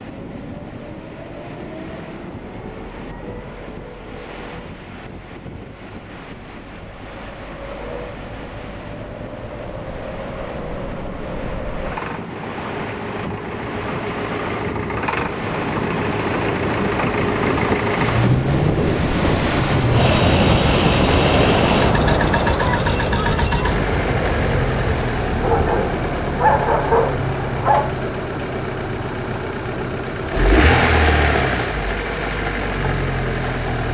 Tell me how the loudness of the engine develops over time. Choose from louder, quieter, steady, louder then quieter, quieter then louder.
louder.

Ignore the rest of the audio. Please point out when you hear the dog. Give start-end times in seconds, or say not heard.
25.4-27.9.